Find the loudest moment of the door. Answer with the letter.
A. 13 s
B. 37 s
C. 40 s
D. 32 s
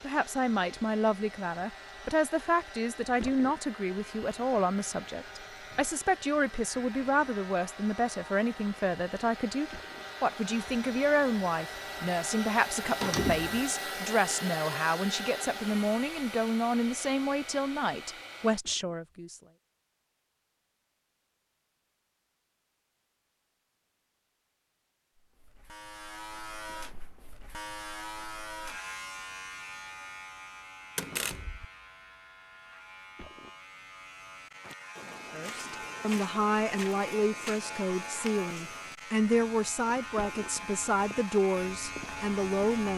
A.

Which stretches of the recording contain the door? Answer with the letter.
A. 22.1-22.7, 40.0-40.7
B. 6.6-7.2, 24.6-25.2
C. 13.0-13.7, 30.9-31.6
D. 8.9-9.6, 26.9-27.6
C.